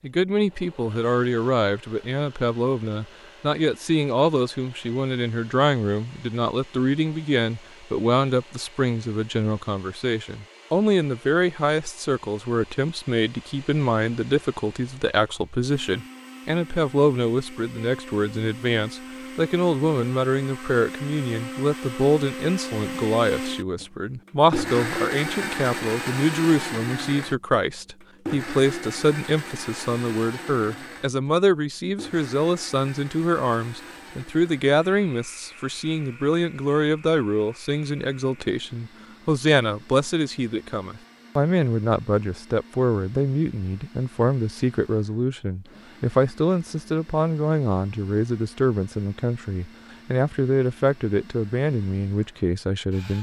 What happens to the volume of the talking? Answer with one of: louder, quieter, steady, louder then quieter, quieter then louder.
steady.